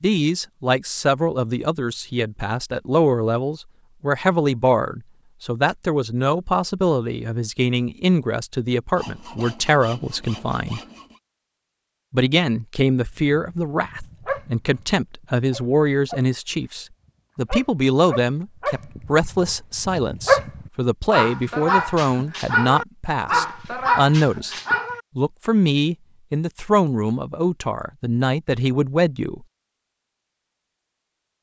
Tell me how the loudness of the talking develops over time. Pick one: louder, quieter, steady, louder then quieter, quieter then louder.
steady.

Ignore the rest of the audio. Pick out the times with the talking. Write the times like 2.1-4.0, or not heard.
0.0-10.8, 12.1-24.6, 25.1-29.4.